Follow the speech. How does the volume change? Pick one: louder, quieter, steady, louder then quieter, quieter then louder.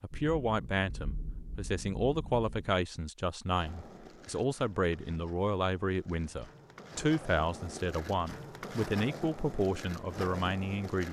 steady.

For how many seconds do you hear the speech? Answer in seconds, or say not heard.
11 s.